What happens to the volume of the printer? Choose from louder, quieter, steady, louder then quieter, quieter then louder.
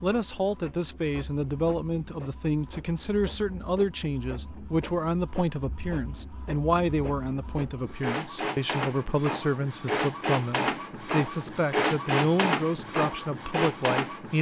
louder.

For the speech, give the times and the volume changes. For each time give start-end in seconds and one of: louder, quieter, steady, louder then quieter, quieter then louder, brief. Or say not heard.
0.0-14.3 steady.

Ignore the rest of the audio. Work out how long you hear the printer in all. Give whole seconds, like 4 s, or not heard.
14 s.